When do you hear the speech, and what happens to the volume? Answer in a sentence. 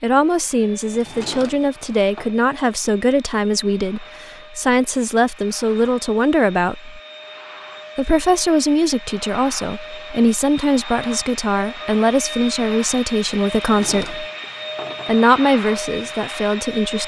You can hear the speech from 0.0 to 7.0 s, at a steady volume; from 8.0 to 14.2 s, at a steady volume; and briefly from 15.1 to 17.0 s.